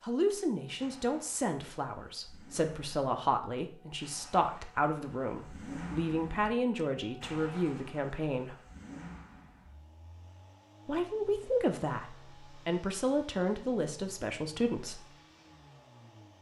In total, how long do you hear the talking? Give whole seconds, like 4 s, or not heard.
13 s.